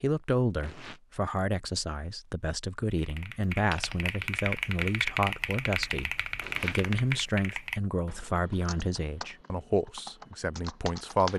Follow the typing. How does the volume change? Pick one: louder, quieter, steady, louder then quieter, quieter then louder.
quieter.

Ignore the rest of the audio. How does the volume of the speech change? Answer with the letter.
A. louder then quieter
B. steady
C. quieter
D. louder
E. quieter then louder
B.